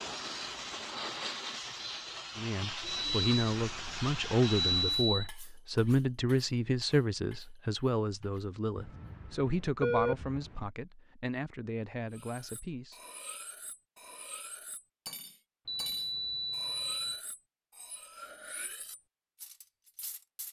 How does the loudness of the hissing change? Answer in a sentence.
The volume of the hissing stays about the same.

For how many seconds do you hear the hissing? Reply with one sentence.
You can hear the hissing for 5 seconds altogether.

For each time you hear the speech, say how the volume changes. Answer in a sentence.
The speech can be heard from 2.4 to 13.0 s, getting quieter.